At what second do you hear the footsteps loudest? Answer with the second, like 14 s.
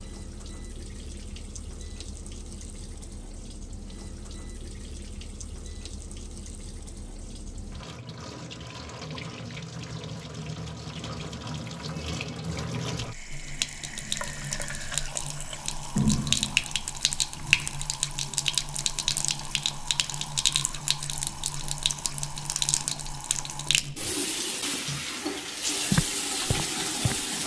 26 s.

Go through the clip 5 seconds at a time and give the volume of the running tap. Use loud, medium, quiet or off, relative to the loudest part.
quiet, quiet, medium, loud, loud, loud.